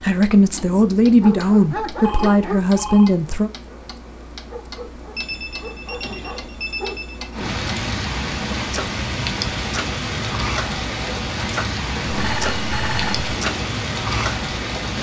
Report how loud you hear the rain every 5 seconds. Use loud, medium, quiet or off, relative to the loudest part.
off, loud, loud.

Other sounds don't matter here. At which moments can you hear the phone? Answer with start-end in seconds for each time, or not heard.
2.0-3.1, 5.2-7.3, 12.1-13.2.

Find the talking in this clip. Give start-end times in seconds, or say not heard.
0.0-3.5.